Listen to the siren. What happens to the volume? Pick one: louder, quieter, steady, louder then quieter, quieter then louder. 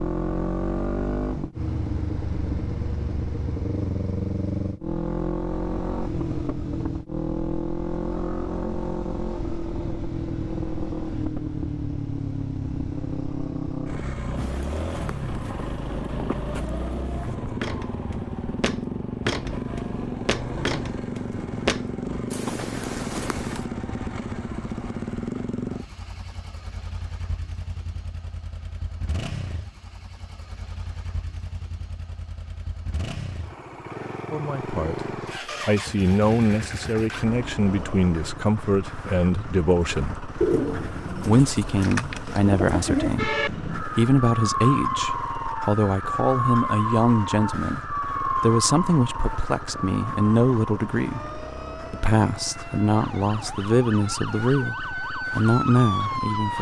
quieter then louder.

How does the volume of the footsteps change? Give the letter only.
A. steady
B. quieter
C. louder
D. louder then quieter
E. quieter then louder
C.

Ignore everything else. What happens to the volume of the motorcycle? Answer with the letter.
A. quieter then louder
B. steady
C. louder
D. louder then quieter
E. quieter
E.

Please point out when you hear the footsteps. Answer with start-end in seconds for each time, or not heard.
14.3-23.6.